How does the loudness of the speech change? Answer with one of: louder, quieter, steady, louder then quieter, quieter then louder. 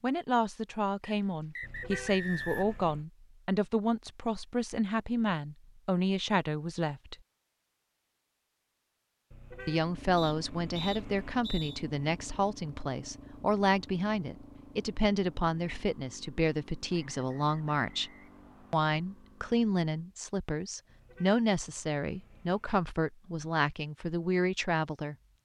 steady.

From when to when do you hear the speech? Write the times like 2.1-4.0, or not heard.
0.0-7.2, 9.7-18.1, 18.7-25.1.